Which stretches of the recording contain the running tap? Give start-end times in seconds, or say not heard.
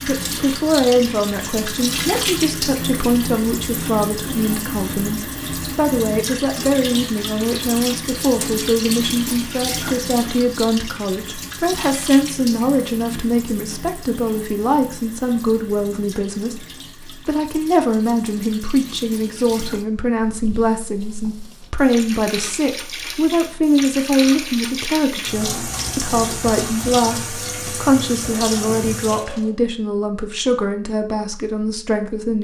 0.0-29.6.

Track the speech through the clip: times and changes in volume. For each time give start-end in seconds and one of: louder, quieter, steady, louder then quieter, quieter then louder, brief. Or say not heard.
0.0-32.3 steady.